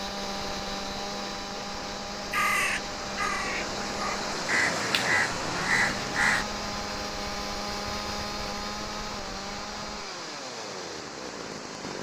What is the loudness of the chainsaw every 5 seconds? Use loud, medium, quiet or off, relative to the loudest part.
loud, loud, medium.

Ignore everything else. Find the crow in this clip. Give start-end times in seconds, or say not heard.
2.3-6.5.